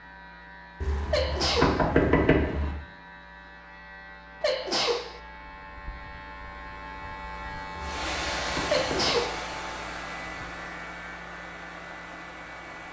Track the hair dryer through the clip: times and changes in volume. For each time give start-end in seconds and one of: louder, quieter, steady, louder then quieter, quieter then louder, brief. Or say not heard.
7.8-12.8 quieter.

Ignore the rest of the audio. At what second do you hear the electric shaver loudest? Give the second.
8 s.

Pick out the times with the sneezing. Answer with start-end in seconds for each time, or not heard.
1.1-1.9, 4.4-5.2, 8.7-9.4.